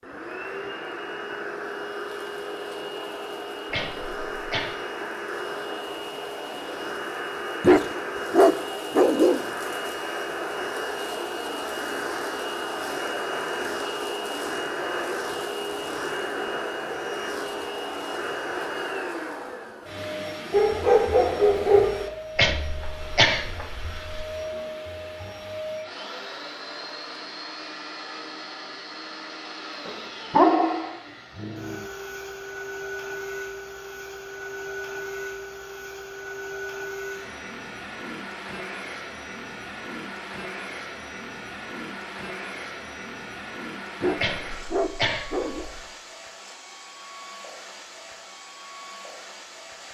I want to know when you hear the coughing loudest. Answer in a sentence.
The loudest moment of the coughing is at 23 seconds.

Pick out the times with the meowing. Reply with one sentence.
You can't hear the meowing here.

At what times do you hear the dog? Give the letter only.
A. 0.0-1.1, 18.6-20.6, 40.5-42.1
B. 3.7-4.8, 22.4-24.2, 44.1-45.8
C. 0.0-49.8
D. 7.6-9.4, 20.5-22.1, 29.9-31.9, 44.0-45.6
D.